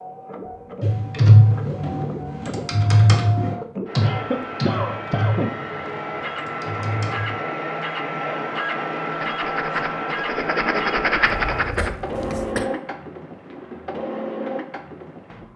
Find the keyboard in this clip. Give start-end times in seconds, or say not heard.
0.8-7.3.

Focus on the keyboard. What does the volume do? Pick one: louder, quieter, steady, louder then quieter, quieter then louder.
quieter.